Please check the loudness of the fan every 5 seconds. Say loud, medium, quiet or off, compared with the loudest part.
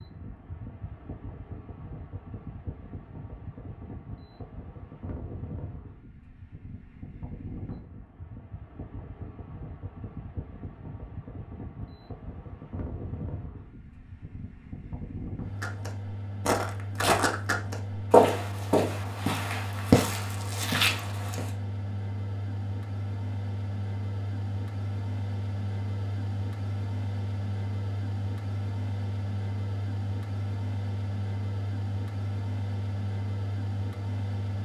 medium, medium, medium, loud, loud, loud, loud.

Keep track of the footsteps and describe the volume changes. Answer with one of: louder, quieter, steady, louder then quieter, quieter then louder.
louder then quieter.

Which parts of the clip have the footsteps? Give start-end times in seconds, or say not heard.
15.6-21.5.